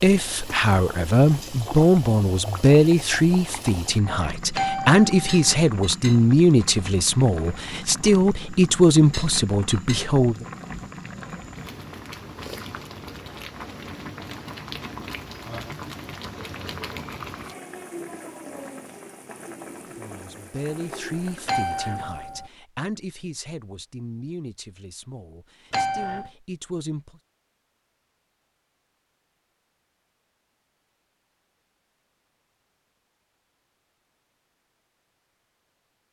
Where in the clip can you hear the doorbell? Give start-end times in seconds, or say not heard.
4.5-5.3, 21.4-22.5, 25.7-26.3.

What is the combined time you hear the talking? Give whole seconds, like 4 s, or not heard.
18 s.